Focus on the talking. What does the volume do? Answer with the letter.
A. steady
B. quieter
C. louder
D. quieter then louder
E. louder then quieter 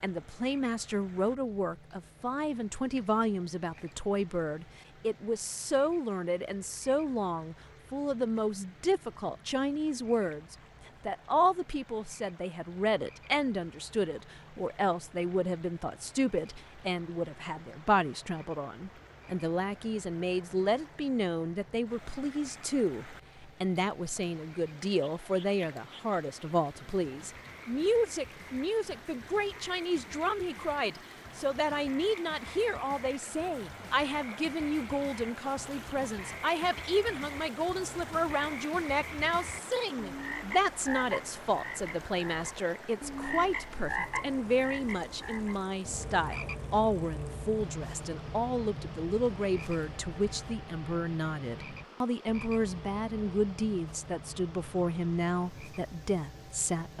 A.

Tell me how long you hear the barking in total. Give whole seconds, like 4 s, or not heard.
not heard.